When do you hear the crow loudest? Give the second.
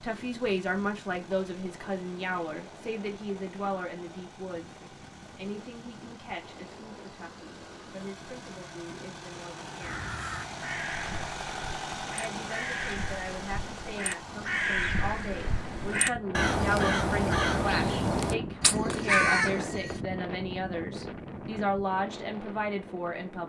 19 s.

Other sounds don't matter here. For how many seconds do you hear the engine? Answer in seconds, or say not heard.
16 s.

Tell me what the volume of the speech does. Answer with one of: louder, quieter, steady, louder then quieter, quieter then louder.
quieter then louder.